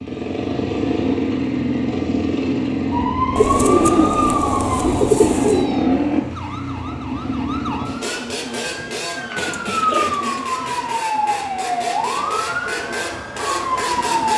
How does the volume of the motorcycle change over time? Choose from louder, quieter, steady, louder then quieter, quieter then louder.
quieter.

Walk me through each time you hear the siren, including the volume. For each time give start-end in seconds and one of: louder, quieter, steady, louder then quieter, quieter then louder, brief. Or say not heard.
2.9-14.3 quieter then louder.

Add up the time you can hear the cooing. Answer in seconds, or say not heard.
4 s.